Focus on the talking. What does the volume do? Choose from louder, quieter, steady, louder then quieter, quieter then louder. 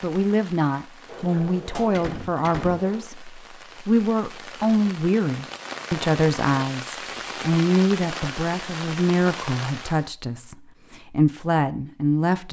steady.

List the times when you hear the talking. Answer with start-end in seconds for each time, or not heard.
0.0-12.4.